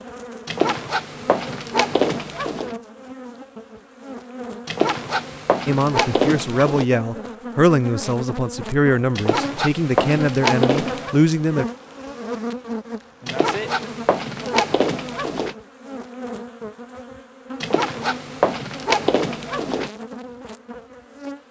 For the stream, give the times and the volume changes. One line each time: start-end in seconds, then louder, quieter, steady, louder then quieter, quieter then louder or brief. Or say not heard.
not heard.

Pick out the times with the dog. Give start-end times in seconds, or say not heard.
0.5-2.8, 4.7-6.8, 9.2-11.2, 13.2-15.6, 17.6-19.9.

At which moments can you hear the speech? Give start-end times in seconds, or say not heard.
5.7-11.7.